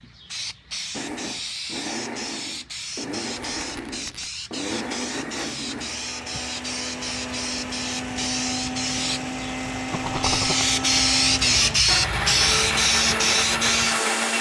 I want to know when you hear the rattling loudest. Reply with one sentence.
The volume of the rattling peaks at 10 seconds.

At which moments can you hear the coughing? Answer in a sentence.
You can't hear the coughing here.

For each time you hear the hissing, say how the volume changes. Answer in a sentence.
You can hear the hissing from 0.0 to 14.3 s, getting louder.